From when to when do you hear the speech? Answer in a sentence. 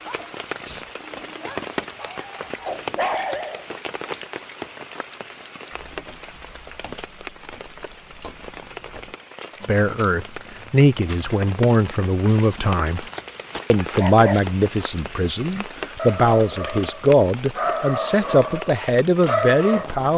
You can hear the speech from 9.7 to 13.1 s and from 13.7 to 20.1 s.